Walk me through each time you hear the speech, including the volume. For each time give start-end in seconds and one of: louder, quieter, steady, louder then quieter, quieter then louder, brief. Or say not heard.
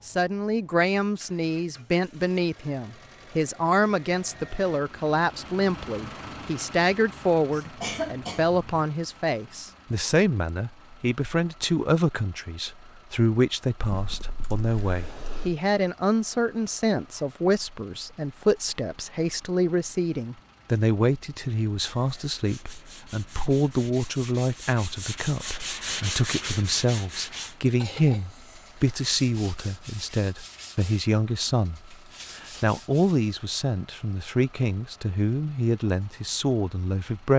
0.1-37.3 steady.